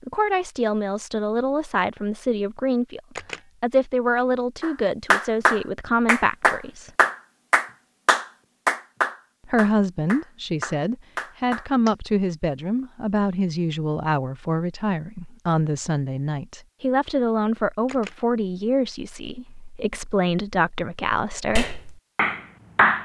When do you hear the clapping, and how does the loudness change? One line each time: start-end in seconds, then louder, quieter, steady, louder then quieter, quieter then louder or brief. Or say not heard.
4.6-11.9 quieter
21.6-23.0 brief.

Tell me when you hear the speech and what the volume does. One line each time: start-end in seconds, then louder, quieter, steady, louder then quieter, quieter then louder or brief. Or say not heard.
0.0-6.9 steady
9.4-21.7 steady.